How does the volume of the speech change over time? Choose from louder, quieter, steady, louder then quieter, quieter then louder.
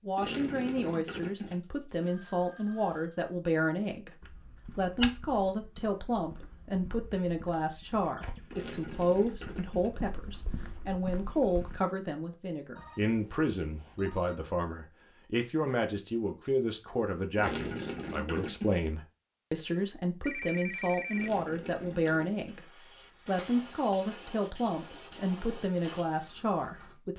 steady.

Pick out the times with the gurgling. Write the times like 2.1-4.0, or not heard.
0.1-1.6, 8.5-9.9, 17.4-18.8, 21.1-22.6.